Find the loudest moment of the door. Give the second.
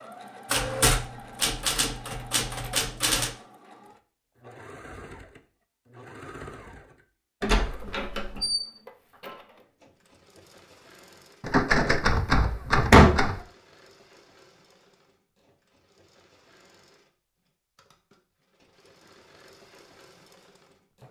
13 s.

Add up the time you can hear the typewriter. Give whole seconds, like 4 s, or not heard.
5 s.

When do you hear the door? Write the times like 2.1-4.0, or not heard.
7.4-8.7, 12.2-13.2.